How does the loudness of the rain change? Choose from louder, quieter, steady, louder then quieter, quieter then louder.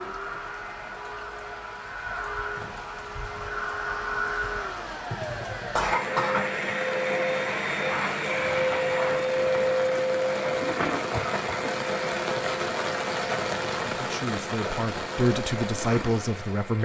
louder.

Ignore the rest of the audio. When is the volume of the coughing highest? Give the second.
6 s.